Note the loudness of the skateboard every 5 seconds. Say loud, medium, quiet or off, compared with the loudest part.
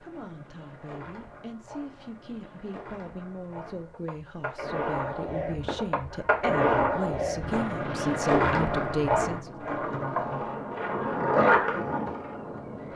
quiet, loud, loud.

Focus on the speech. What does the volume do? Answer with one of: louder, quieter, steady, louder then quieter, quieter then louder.
louder.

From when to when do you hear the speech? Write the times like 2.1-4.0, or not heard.
0.0-9.6.